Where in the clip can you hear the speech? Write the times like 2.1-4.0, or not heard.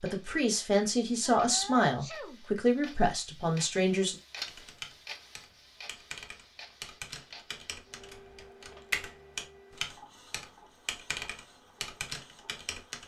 0.0-4.2.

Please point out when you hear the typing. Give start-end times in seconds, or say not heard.
4.5-13.0.